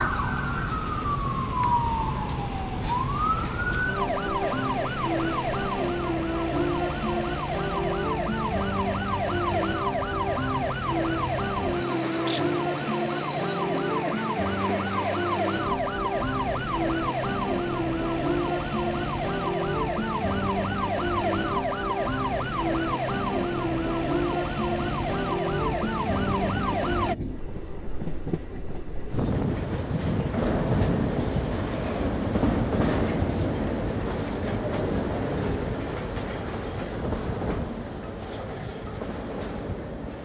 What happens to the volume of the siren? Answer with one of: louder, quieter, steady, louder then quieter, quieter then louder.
steady.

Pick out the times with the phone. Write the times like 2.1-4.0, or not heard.
not heard.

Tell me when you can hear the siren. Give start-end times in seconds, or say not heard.
0.0-27.1.